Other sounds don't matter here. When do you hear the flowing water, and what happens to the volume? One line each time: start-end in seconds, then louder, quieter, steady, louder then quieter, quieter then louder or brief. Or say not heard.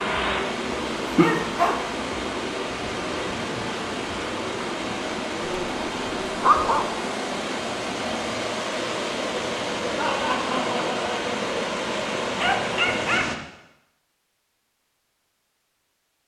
0.0-13.3 steady.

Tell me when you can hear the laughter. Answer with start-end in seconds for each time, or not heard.
9.9-11.3.